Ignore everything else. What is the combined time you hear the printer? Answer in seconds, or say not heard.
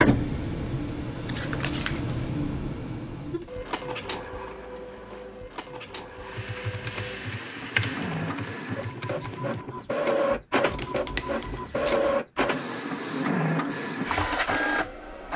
15 s.